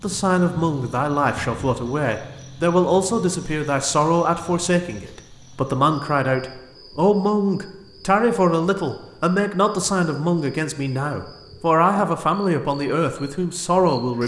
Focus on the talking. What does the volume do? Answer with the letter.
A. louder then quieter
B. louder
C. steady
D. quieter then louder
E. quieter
C.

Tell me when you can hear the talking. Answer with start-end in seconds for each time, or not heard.
0.0-14.2.